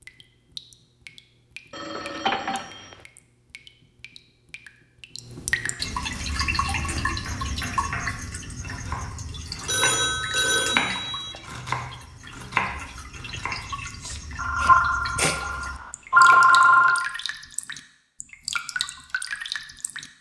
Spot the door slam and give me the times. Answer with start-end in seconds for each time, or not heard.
not heard.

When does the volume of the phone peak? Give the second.
16 s.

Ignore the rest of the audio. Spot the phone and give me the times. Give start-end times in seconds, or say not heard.
1.7-3.0, 9.7-11.3, 14.3-17.1.